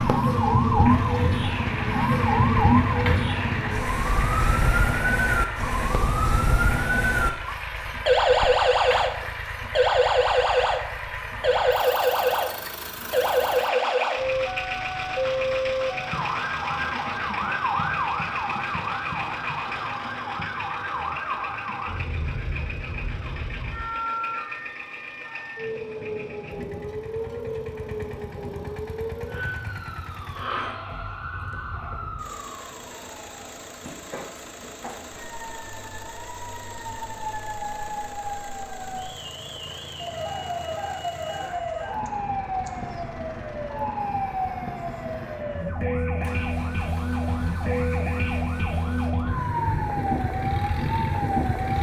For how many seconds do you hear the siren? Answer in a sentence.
The siren can be heard for 52 seconds in total.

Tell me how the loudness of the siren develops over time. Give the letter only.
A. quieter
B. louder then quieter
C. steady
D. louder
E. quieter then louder
E.